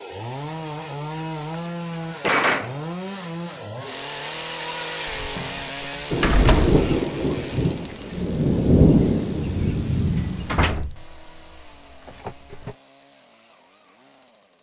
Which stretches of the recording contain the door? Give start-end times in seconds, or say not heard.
1.5-2.8, 5.2-6.8, 10.2-12.8.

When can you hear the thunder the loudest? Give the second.
9 s.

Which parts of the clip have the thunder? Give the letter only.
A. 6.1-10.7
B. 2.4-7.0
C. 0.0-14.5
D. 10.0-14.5
A.